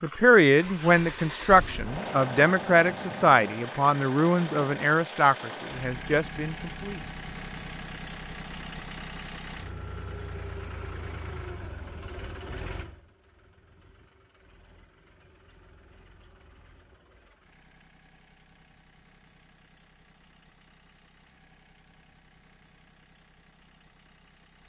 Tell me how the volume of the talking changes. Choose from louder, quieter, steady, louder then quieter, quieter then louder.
quieter.